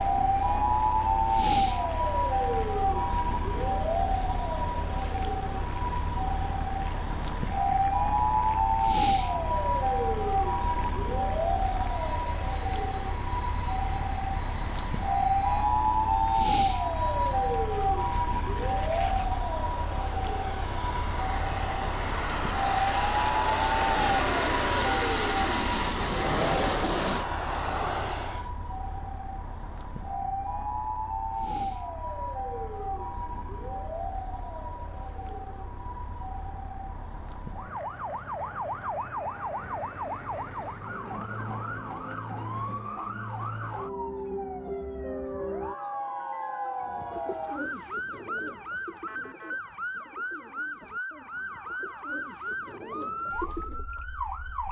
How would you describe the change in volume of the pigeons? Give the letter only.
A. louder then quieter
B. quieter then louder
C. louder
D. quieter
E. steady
B.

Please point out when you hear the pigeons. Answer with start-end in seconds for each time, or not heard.
46.8-53.9.